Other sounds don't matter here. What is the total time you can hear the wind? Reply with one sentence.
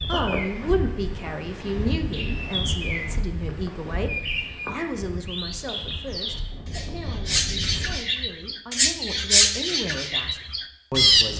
You can hear the wind for 8 seconds altogether.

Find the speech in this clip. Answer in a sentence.
You can hear the speech from 0.1 to 11.3 s.